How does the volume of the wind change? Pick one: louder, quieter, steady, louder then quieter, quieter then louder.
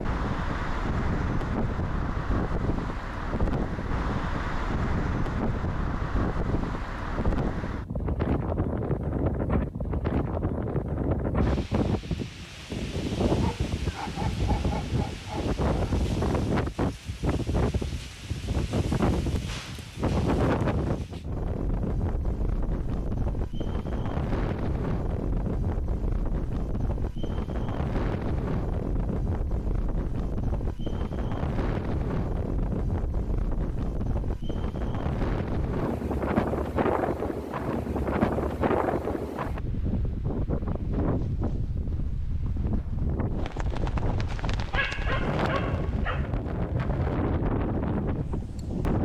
steady.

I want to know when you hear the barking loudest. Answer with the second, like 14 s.
45 s.